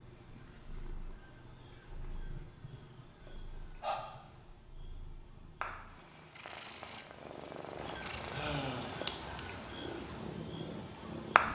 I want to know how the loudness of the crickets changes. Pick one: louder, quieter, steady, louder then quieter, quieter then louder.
louder.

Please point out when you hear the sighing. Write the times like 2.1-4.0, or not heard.
3.4-4.0, 8.3-9.0.